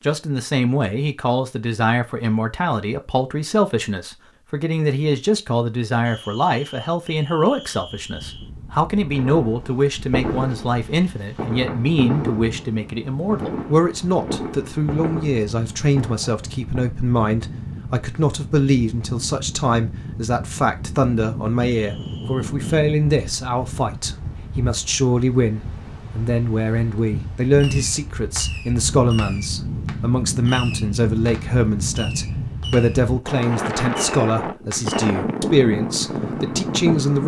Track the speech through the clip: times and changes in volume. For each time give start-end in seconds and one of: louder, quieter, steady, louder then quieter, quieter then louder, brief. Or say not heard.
0.0-37.2 steady.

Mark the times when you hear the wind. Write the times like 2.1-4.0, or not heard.
7.7-37.2.